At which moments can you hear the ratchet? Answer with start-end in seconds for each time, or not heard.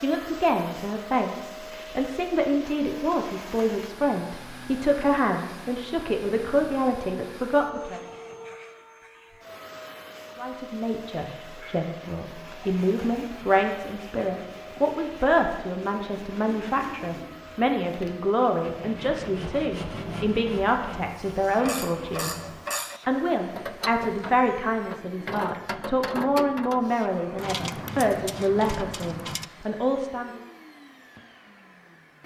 21.4-29.5.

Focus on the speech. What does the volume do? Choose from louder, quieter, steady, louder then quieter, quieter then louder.
steady.